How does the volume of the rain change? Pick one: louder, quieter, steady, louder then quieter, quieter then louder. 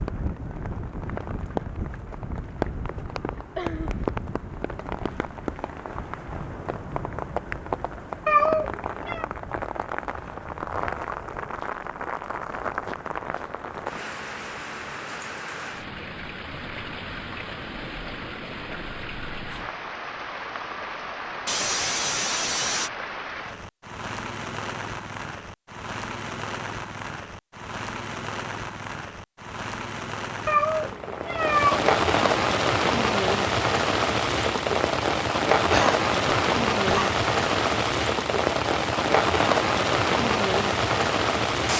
louder.